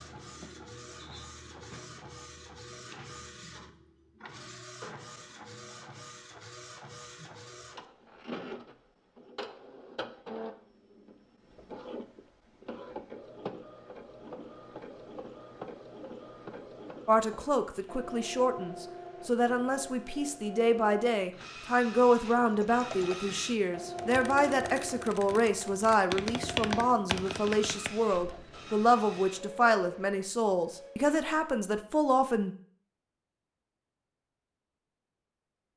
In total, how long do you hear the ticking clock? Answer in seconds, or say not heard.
not heard.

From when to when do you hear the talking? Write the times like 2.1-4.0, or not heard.
17.1-32.5.